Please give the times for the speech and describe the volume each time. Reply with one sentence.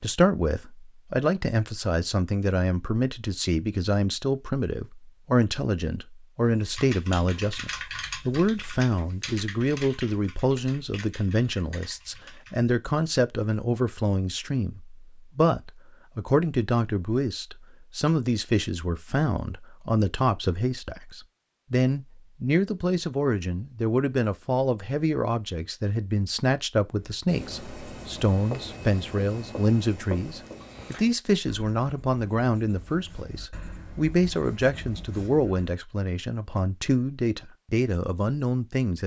You can hear the speech from 0.0 to 39.0 s, at a steady volume.